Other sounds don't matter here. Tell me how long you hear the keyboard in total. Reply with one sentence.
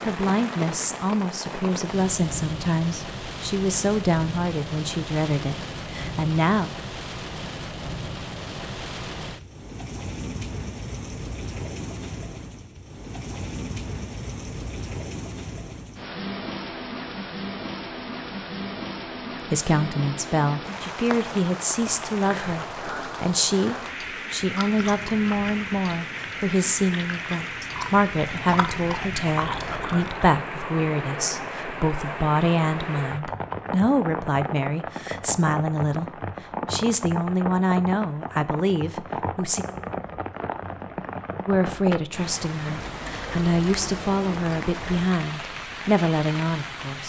The keyboard can't be heard in this clip.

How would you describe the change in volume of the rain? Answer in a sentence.
The volume of the rain stays about the same.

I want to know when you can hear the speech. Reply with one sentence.
The speech can be heard from 0.1 to 6.7 s, from 19.5 to 39.6 s and from 41.5 to 47.0 s.